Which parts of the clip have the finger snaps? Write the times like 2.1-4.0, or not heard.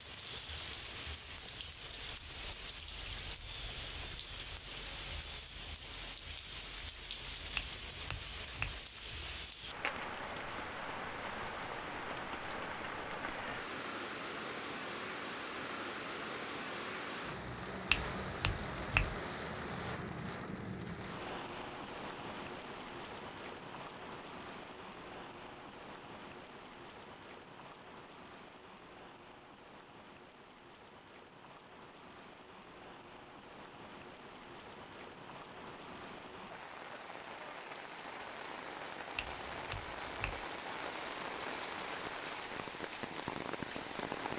7.5-8.8, 17.9-19.1, 39.1-40.5.